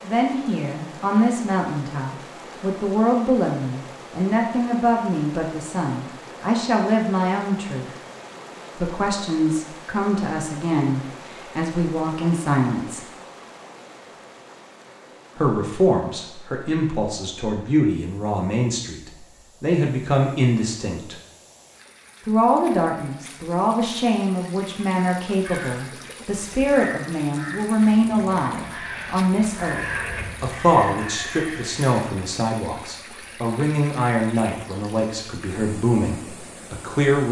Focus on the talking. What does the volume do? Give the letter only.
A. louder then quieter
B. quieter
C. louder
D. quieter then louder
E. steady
E.